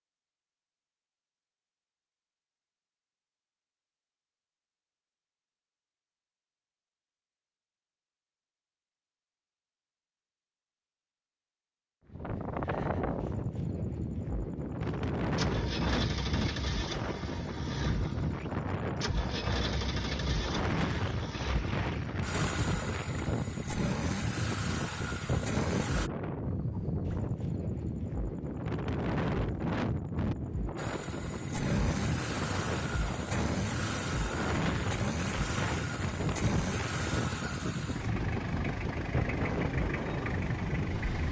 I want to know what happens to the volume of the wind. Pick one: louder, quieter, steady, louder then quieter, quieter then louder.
steady.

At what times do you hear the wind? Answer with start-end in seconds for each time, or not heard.
12.1-41.2.